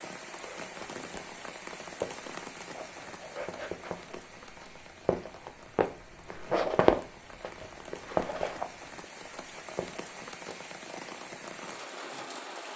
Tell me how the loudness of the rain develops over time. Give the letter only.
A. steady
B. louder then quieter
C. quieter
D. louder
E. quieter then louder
E.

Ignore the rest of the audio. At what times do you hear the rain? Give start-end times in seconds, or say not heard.
0.0-12.7.